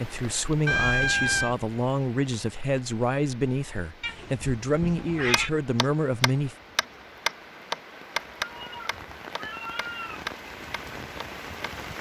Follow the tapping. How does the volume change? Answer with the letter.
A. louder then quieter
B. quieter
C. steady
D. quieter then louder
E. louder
A.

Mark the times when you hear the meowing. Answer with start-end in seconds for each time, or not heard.
0.7-1.6, 4.0-5.5, 8.4-10.3.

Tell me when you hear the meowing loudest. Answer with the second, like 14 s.
1 s.